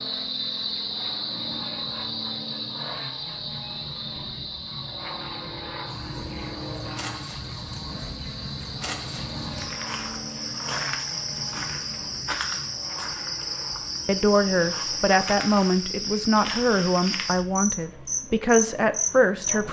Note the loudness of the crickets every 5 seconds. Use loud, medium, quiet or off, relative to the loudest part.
loud, medium, loud, loud.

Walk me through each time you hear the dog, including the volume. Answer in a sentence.
You can't hear the dog here.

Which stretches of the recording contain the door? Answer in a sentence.
You can't hear the door here.